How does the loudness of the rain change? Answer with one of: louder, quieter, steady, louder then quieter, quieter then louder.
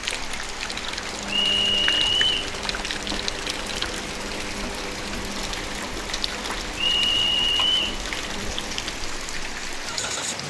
steady.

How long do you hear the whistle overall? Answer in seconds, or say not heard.
2 s.